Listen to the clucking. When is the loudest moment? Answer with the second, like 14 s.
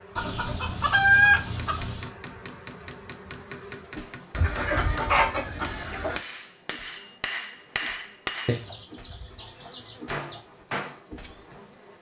1 s.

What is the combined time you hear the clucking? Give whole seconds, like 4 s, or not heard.
6 s.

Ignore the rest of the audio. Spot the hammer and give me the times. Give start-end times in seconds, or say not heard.
1.1-11.7.